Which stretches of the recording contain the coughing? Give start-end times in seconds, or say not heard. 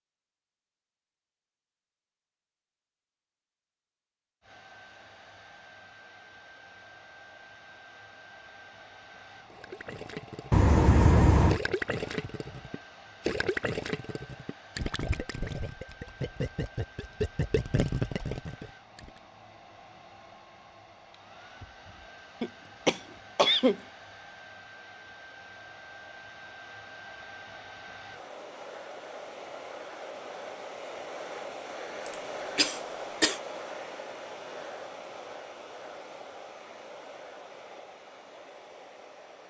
10.5-11.6, 22.4-23.8, 32.0-33.4.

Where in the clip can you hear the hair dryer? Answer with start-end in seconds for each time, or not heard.
4.4-39.4.